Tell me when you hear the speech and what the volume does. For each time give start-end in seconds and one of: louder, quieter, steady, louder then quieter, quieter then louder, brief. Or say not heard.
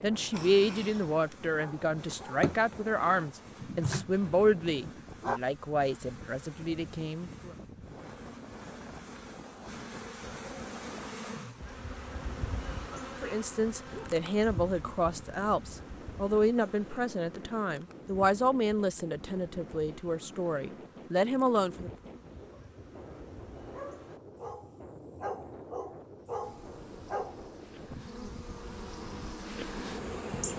0.0-7.5 quieter
13.2-21.9 steady.